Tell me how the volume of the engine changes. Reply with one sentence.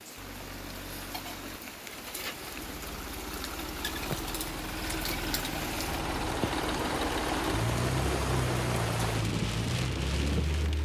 The volume of the engine goes up.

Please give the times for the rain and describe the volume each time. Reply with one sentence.
You can hear the rain from 0.0 to 10.8 s, getting louder.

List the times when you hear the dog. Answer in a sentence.
You can't hear the dog here.